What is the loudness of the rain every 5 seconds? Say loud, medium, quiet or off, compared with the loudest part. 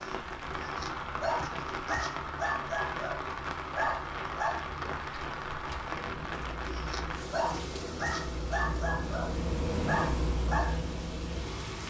loud, loud, medium.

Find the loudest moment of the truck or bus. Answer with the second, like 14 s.
10 s.